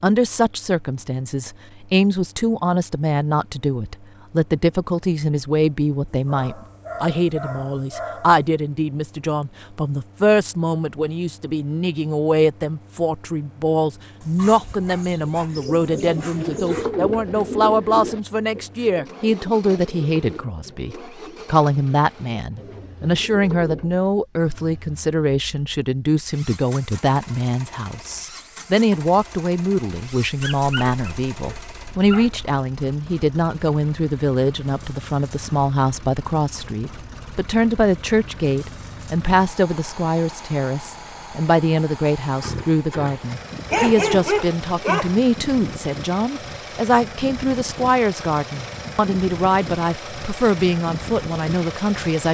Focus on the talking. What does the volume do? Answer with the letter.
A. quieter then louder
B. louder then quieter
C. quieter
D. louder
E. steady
E.